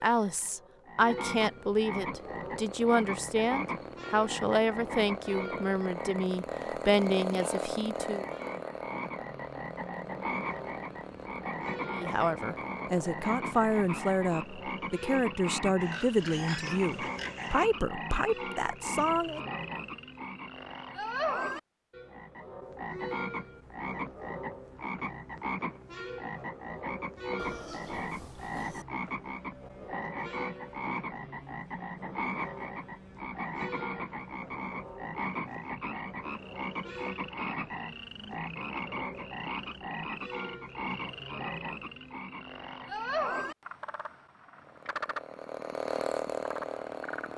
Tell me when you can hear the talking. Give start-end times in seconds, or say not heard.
0.0-8.2, 11.9-19.4.